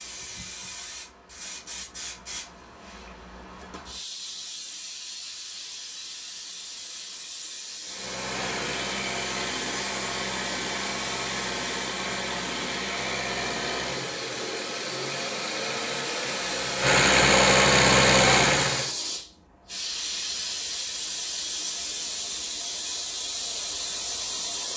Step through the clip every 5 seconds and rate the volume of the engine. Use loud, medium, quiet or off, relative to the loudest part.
off, medium, medium, loud, off.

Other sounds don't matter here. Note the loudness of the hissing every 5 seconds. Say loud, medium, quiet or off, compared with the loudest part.
medium, medium, medium, loud, loud.